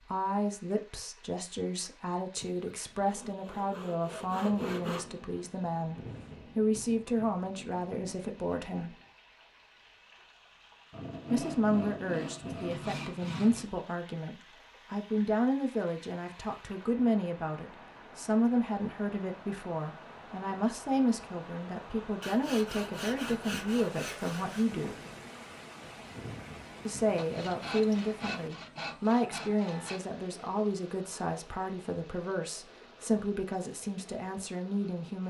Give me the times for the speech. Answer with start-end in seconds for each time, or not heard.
0.0-8.9, 11.3-24.9, 26.9-35.2.